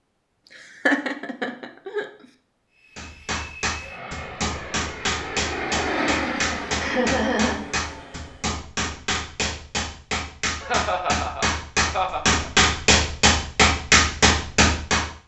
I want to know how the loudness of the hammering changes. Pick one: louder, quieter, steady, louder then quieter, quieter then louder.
louder.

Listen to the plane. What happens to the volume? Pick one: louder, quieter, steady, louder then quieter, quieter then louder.
louder then quieter.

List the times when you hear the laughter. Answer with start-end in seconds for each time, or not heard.
0.8-2.0, 6.8-7.7, 10.6-12.3.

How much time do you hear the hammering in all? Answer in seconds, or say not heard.
12 s.